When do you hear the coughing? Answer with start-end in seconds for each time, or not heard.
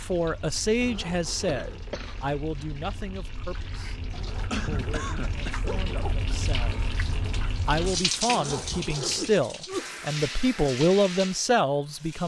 1.4-2.2, 4.5-5.5, 9.2-9.8.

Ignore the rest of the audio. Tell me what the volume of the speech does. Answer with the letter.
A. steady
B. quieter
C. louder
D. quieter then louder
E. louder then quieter
D.